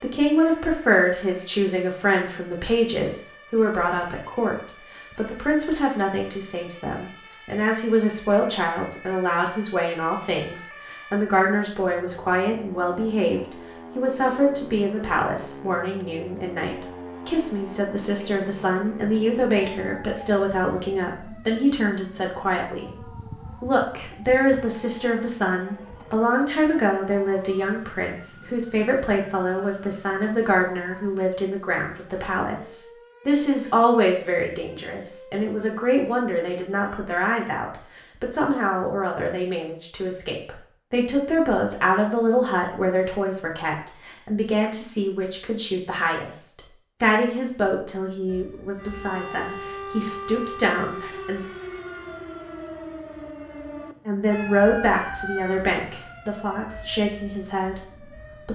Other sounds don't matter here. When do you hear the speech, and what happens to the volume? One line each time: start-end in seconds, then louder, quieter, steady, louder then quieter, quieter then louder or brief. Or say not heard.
0.0-51.5 steady
54.0-58.5 quieter.